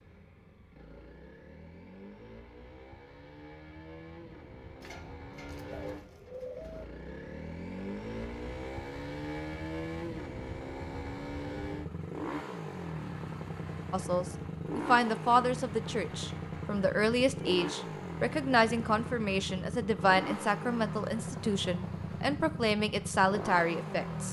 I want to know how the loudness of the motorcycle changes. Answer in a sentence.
The volume of the motorcycle goes up.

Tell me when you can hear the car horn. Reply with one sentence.
The car horn can't be heard in this clip.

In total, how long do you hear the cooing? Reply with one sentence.
You can hear the cooing for 2 seconds altogether.